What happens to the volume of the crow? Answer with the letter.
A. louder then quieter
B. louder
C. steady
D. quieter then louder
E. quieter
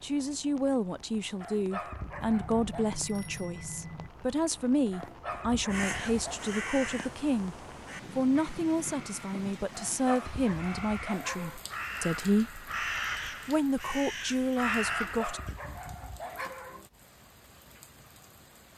D.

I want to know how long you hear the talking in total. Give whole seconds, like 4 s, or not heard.
14 s.